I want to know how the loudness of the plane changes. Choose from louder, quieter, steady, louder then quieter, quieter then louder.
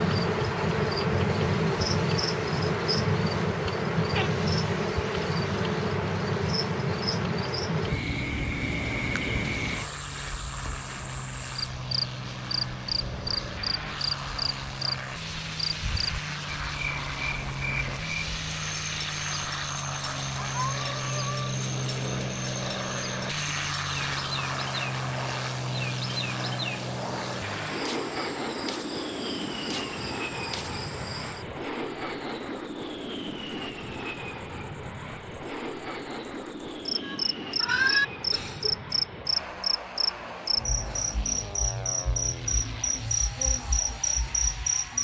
louder then quieter.